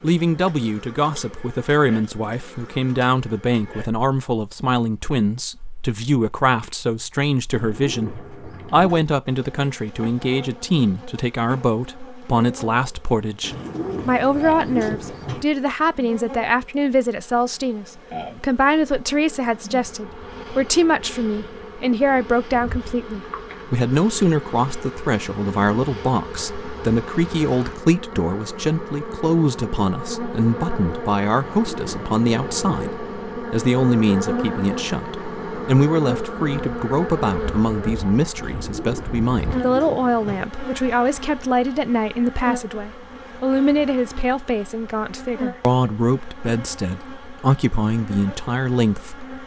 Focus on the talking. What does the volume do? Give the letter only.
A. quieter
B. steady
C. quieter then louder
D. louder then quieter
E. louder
B.